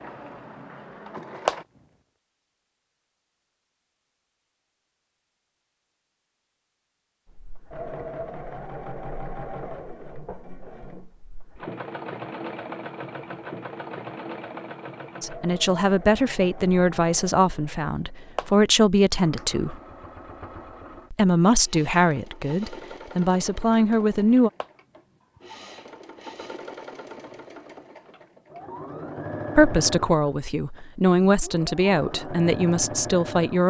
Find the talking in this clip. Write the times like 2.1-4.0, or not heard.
15.2-19.8, 21.1-24.5, 29.6-33.6.